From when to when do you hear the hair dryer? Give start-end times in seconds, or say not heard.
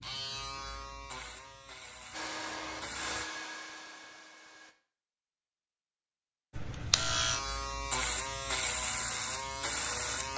2.1-4.8.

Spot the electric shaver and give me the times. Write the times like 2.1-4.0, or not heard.
0.0-3.2, 6.5-10.3.